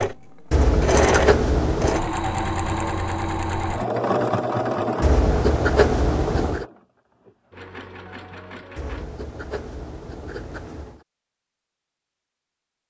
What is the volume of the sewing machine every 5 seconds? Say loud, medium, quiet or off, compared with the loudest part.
loud, medium, off.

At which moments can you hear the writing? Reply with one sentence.
You can hear the writing from 0.5 to 2.0 s, from 5.0 to 6.7 s and from 8.8 to 11.1 s.